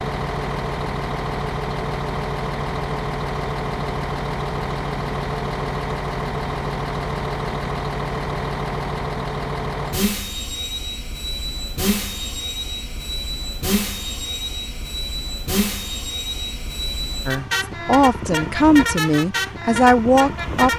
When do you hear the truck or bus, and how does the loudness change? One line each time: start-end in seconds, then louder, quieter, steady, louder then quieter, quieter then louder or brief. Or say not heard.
0.0-20.7 steady.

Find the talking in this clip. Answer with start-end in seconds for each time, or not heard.
17.2-20.7.